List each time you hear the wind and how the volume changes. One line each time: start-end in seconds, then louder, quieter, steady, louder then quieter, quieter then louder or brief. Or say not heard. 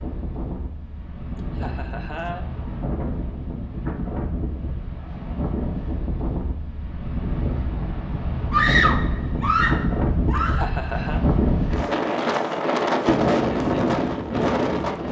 0.0-15.0 louder.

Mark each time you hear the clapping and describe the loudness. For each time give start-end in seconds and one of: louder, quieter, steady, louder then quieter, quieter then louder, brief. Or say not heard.
not heard.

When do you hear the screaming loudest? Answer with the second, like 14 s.
9 s.